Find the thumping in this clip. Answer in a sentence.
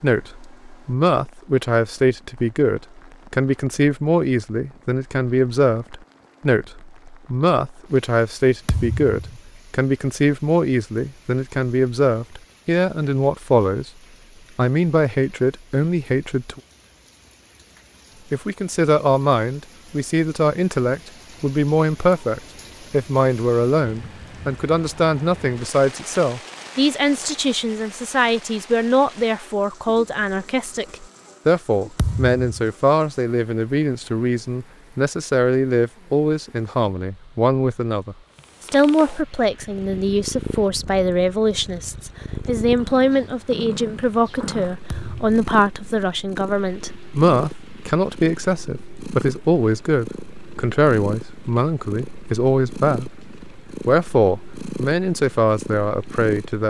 The thumping can be heard from 8.7 to 9.4 s, from 31.9 to 32.7 s and from 44.9 to 45.4 s.